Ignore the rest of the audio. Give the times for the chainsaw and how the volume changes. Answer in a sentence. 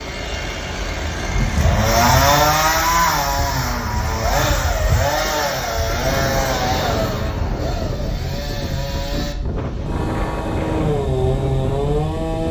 The chainsaw can be heard from 0.0 to 12.4 s, getting quieter then louder.